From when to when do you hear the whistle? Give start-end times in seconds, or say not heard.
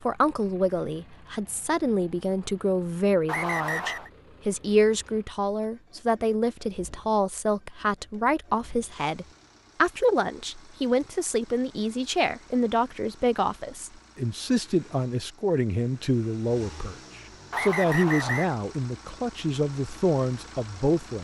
3.2-4.1, 17.5-18.6.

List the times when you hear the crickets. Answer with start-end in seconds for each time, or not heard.
not heard.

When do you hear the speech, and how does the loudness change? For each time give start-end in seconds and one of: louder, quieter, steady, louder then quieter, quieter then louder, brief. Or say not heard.
0.0-21.1 steady.